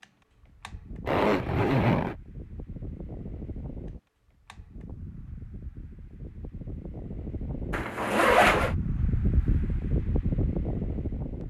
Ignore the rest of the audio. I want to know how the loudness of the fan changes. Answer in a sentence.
The volume of the fan goes up.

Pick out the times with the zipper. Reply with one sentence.
The zipper can be heard from 1.1 to 2.1 s and from 7.7 to 8.8 s.